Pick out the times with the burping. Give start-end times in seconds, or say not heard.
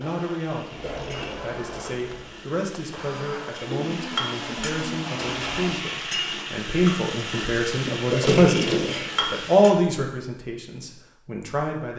0.5-1.4, 7.9-9.2.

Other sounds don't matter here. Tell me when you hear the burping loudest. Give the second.
8 s.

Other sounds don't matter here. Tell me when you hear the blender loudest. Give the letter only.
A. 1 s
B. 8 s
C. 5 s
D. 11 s
C.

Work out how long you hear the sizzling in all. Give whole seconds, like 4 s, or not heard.
10 s.